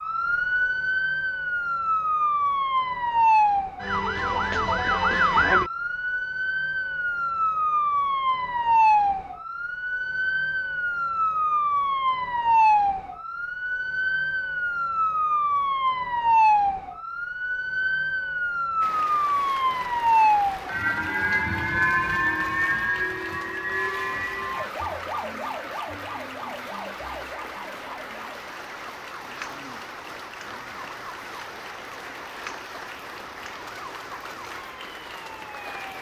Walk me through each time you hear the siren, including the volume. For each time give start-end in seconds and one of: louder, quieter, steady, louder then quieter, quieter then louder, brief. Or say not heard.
0.0-35.9 quieter.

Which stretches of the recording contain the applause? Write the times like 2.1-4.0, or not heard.
18.8-35.9.